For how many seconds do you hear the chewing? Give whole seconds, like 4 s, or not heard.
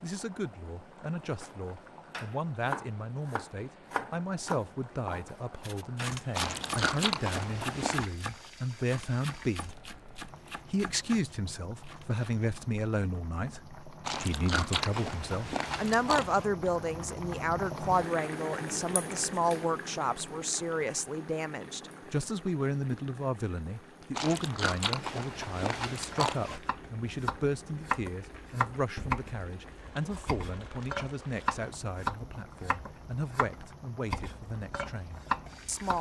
7 s.